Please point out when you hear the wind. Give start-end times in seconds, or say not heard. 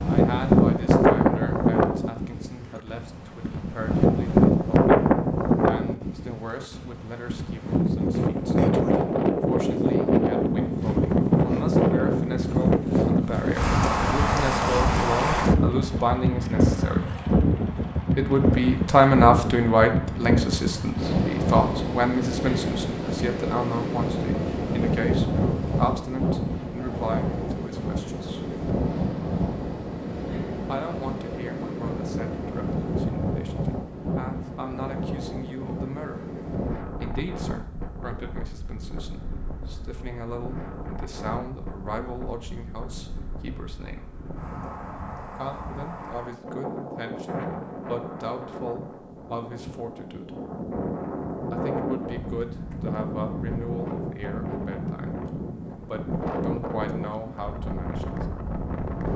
0.0-59.1.